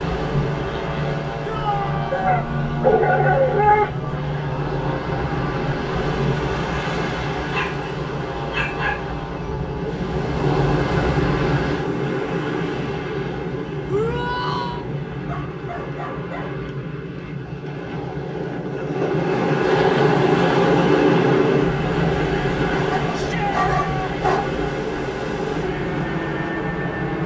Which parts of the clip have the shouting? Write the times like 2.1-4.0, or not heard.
1.4-2.5, 13.8-14.8, 23.1-24.1.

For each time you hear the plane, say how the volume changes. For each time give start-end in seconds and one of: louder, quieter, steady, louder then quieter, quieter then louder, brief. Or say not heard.
0.0-13.0 quieter
24.3-27.2 brief.